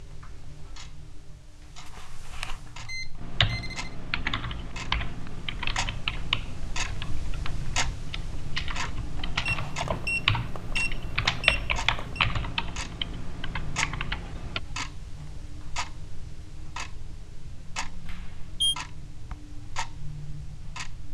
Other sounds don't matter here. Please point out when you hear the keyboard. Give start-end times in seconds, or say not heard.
3.2-14.6.